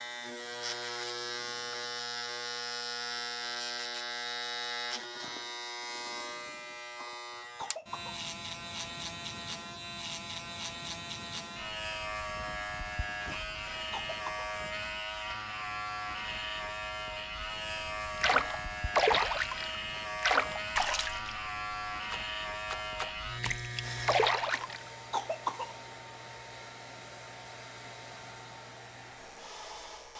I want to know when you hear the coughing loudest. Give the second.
25 s.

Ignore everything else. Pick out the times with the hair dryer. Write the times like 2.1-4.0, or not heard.
23.8-30.1.